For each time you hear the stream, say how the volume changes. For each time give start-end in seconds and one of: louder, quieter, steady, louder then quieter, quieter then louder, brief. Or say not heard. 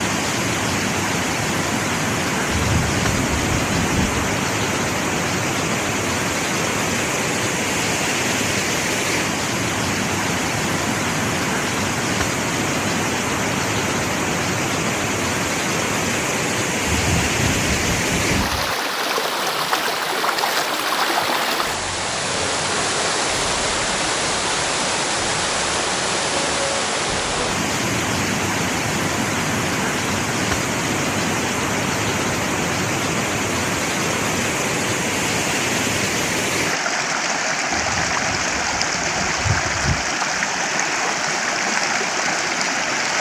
0.0-43.1 steady.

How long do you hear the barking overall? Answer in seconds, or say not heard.
not heard.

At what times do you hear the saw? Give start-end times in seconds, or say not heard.
not heard.